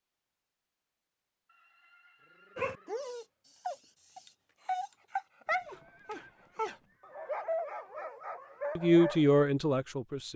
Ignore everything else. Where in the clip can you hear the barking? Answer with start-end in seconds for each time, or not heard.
2.5-9.4.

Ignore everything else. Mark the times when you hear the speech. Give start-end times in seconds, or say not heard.
8.8-10.3.